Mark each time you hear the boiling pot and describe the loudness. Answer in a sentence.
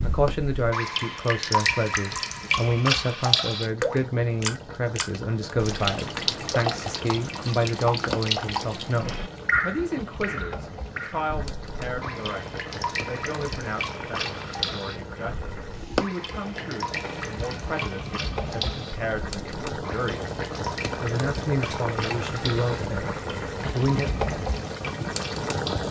The boiling pot can be heard from 0.1 to 25.8 s, getting louder.